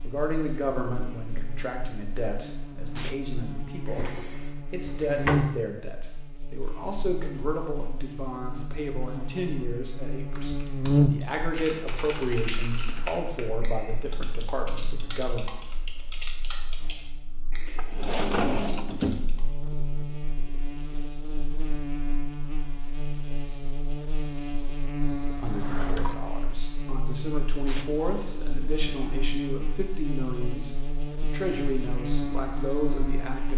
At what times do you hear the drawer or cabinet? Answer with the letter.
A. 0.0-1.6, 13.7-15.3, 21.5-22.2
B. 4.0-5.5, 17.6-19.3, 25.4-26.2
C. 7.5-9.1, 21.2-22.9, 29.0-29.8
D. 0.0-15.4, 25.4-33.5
B.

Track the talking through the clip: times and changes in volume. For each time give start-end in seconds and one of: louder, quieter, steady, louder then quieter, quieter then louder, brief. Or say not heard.
0.0-15.4 steady
25.4-33.5 louder.